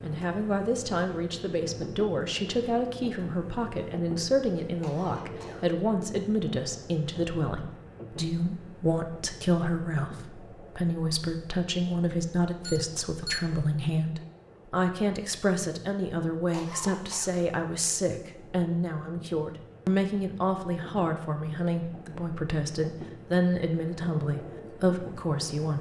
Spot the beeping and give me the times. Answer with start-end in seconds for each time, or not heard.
12.6-13.7.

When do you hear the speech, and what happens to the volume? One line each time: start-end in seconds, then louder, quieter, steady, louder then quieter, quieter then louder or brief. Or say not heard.
0.0-25.7 steady.